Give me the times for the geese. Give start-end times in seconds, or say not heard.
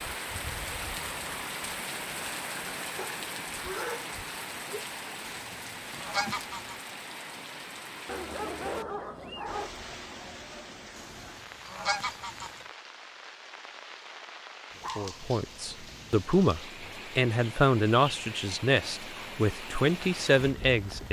5.2-6.8, 10.9-12.6.